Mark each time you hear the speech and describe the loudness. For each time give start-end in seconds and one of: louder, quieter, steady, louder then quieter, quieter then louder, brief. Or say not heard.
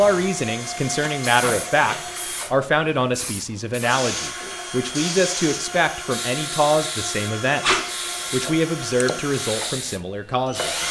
0.0-10.7 steady.